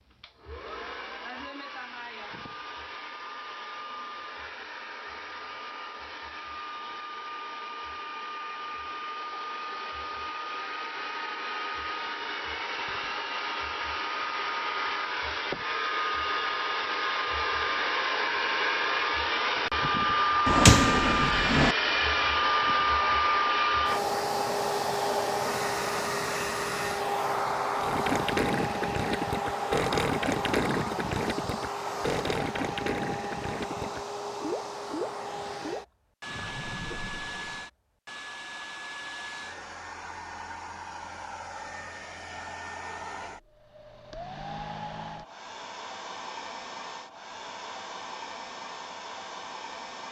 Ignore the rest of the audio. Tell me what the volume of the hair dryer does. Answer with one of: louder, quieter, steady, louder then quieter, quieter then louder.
louder then quieter.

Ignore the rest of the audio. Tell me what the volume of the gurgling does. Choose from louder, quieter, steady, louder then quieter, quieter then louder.
quieter.